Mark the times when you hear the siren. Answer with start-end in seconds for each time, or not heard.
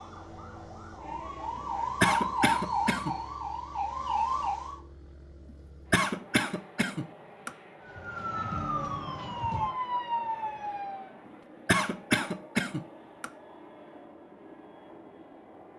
0.0-4.8, 7.8-11.1.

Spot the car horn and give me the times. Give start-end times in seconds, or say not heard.
not heard.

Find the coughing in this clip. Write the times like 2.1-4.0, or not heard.
2.0-3.1, 5.9-7.5, 11.7-13.3.